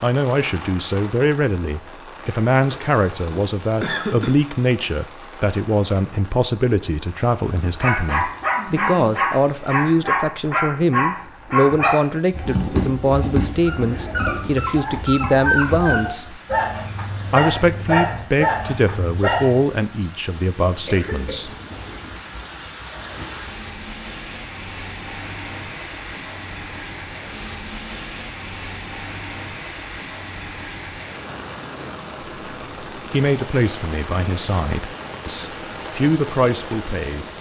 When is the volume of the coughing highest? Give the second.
4 s.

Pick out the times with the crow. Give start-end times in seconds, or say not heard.
not heard.